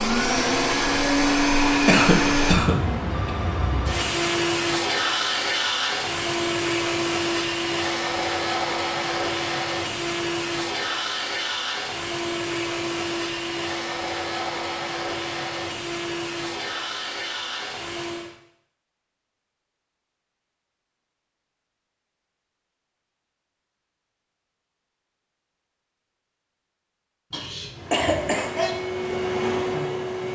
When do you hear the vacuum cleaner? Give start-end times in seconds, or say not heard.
0.0-18.3, 27.7-30.2.